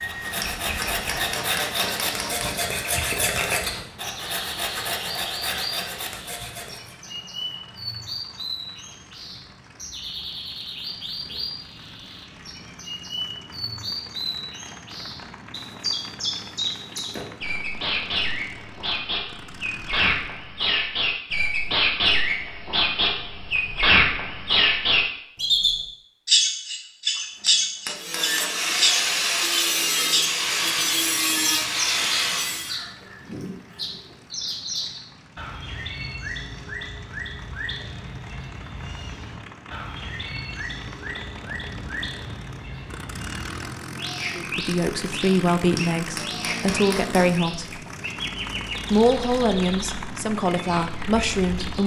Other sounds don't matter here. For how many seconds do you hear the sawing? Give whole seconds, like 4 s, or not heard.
12 s.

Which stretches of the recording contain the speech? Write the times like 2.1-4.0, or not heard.
44.4-47.8, 48.9-51.8.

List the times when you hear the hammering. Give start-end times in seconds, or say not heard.
0.3-2.6, 27.1-28.7, 45.6-47.4.